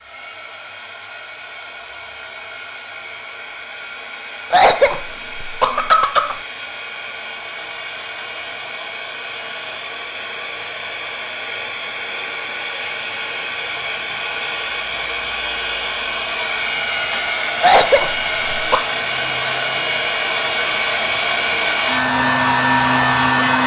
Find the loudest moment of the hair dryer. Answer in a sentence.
The volume of the hair dryer peaks at 23 seconds.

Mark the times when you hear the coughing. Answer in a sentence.
You can hear the coughing from 4.5 to 6.4 s and from 17.6 to 18.9 s.